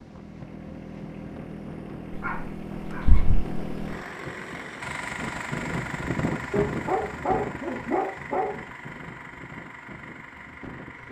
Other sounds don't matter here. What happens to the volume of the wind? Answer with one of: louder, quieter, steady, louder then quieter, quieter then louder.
louder then quieter.